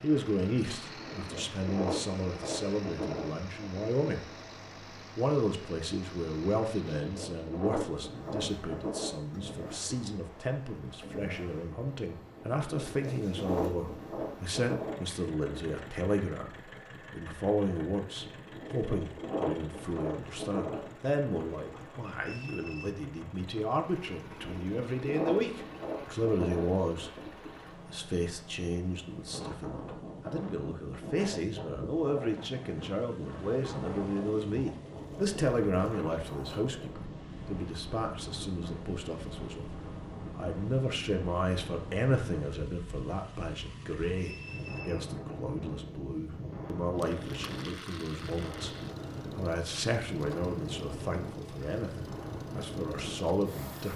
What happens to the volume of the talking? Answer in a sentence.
The loudness of the talking stays about the same.